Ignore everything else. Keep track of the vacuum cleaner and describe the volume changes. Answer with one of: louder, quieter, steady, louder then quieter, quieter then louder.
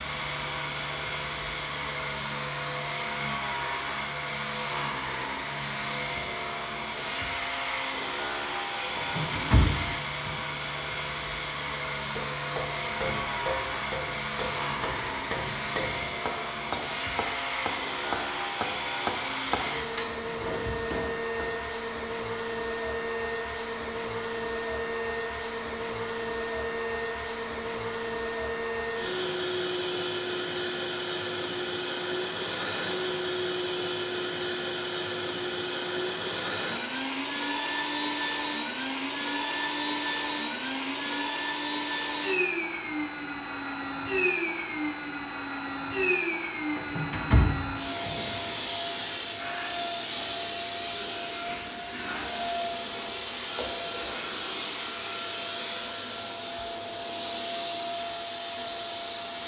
steady.